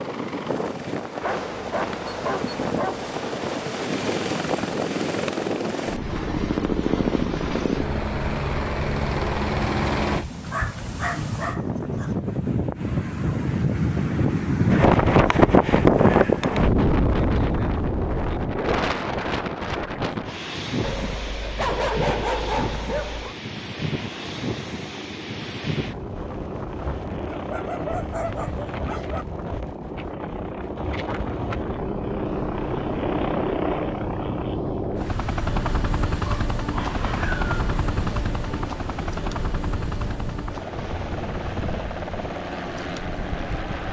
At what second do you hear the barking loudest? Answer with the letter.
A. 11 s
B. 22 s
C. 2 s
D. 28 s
B.